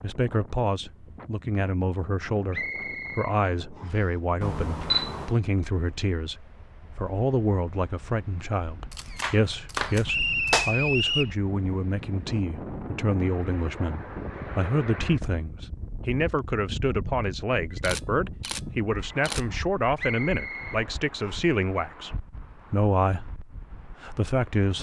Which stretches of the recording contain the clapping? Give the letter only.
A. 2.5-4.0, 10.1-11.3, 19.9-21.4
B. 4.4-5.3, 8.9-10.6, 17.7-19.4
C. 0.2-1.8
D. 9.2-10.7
D.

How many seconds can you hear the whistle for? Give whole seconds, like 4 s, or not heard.
4 s.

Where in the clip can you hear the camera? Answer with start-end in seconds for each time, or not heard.
4.4-5.3, 8.9-10.6, 17.7-19.4.